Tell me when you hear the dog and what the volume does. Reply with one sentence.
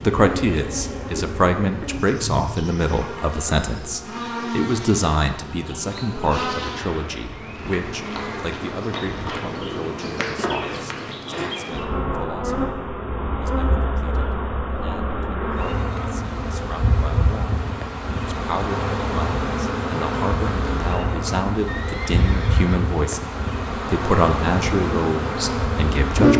You can't hear the dog here.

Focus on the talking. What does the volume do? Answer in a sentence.
The loudness of the talking goes down, then up.